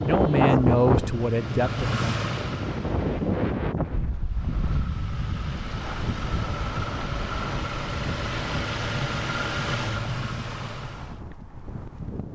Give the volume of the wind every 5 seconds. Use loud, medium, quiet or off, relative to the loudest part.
loud, medium, quiet.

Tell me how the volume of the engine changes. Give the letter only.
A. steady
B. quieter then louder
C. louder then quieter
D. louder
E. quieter
B.